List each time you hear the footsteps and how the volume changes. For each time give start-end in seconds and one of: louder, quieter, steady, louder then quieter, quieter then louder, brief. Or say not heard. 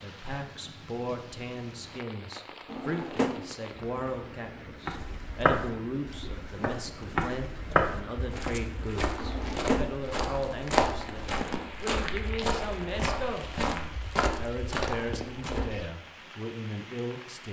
4.8-15.8 steady.